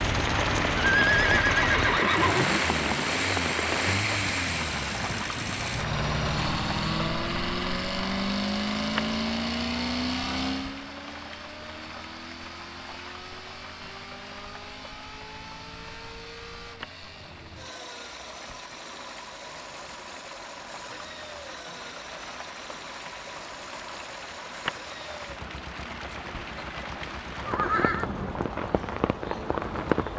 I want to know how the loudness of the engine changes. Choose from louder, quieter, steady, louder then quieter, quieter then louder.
quieter.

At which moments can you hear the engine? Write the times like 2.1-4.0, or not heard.
0.0-30.1.